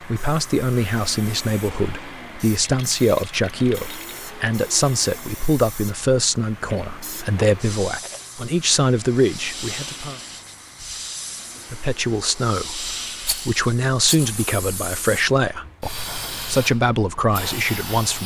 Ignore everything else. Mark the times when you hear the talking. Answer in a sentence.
You can hear the talking from 0.0 to 10.2 s and from 11.7 to 18.2 s.